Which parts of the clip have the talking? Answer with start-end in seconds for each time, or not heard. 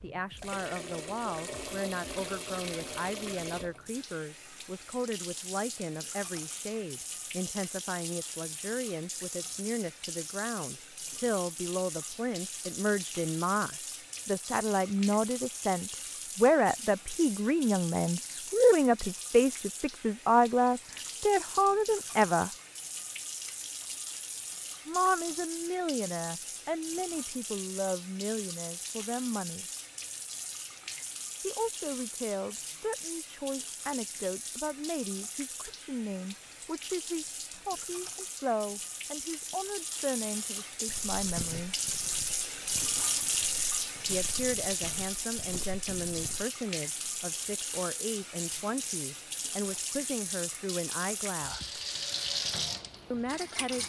0.0-22.5, 24.9-29.6, 31.4-41.8, 44.0-51.7, 53.1-53.8.